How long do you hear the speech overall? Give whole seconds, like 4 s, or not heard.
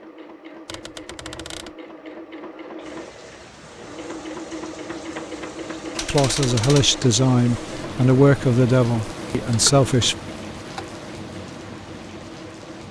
4 s.